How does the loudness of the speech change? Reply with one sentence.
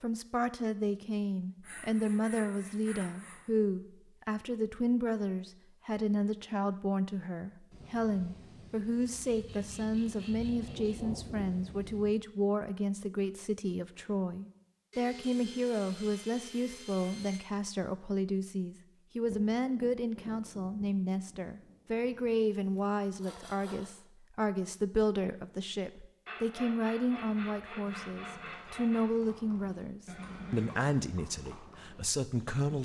The volume of the speech stays about the same.